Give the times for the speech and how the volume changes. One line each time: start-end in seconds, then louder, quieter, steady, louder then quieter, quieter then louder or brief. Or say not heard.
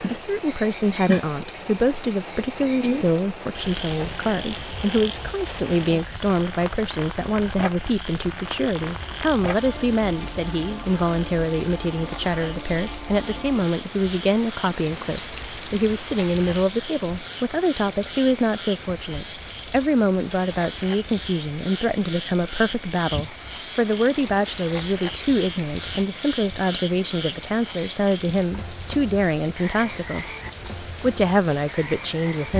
0.0-30.2 steady
31.0-32.5 brief.